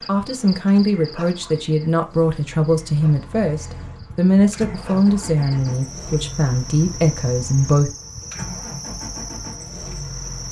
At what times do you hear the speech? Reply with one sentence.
You can hear the speech from 0.1 to 8.0 s.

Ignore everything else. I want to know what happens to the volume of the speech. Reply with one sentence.
The volume of the speech stays about the same.